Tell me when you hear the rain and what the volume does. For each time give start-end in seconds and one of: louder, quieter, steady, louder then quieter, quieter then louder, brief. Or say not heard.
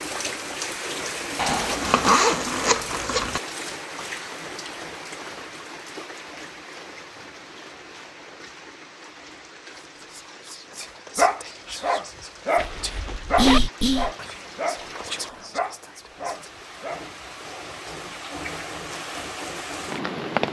0.0-20.4 quieter then louder.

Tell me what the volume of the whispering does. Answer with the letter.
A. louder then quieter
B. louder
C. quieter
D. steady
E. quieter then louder
A.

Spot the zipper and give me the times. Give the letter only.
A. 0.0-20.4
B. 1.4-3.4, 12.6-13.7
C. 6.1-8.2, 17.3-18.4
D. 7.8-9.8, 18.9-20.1
B.